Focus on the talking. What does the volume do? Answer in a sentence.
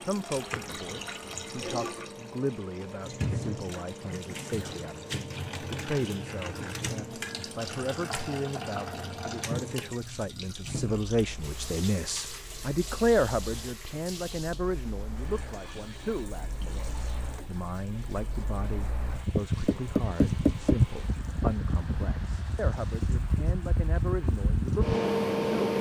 The volume of the talking goes up, then down.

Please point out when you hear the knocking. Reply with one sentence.
You can hear the knocking from 19.6 to 21.1 s.